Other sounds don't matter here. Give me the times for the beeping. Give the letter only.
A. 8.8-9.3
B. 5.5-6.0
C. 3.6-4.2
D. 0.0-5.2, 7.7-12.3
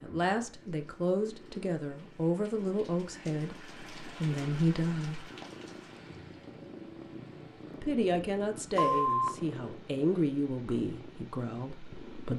A.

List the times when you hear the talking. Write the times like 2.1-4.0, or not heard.
0.0-5.2, 7.7-12.3.